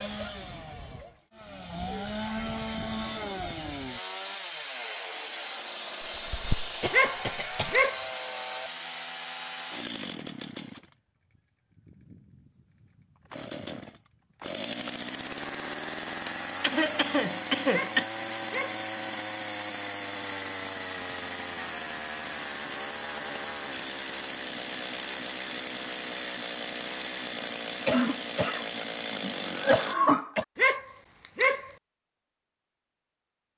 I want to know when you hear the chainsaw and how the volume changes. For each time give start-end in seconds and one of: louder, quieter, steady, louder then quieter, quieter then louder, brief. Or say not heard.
0.0-29.9 steady.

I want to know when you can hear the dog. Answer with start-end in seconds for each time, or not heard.
6.9-8.1, 17.7-18.9, 30.6-31.7.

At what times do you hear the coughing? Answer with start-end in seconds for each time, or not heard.
6.2-7.8, 16.2-18.1, 27.9-30.4.